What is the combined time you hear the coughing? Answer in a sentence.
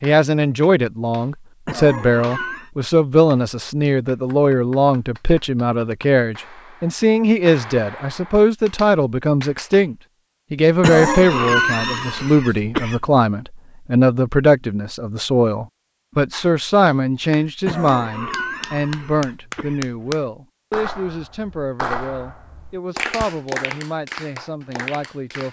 You can hear the coughing for 6 seconds altogether.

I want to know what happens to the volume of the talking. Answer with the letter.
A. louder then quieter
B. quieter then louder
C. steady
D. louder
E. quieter
E.